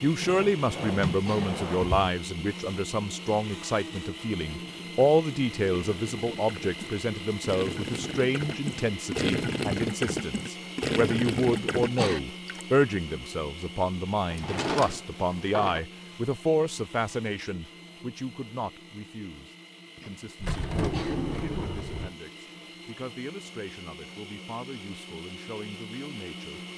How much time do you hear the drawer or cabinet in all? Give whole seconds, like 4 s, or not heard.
5 s.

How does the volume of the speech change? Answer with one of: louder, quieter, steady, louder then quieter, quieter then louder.
quieter.